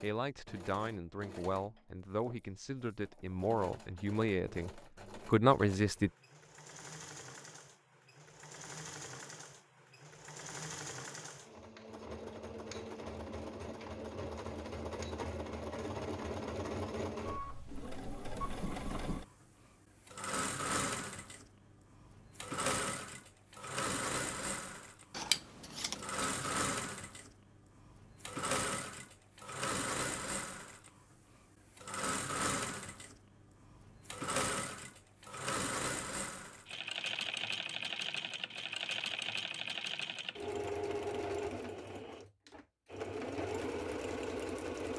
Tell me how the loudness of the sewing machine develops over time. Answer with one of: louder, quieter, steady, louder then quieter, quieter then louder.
louder.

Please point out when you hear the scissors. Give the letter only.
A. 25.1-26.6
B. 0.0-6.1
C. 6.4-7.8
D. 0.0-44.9
A.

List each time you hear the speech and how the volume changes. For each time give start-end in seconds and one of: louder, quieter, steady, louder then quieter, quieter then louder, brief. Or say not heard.
0.0-6.1 louder.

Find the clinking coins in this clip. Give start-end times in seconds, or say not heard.
not heard.